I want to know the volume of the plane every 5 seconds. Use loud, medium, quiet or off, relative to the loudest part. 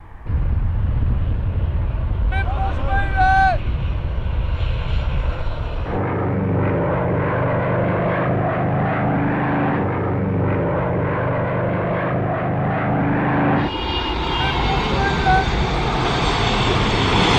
medium, loud, loud, loud.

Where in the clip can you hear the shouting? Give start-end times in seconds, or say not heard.
2.3-3.6, 14.4-15.4.